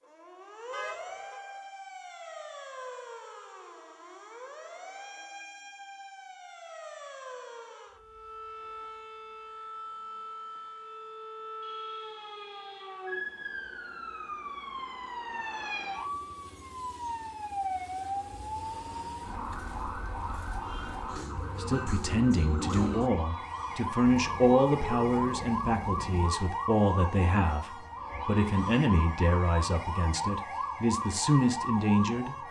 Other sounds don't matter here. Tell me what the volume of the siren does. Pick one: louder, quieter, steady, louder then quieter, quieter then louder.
louder.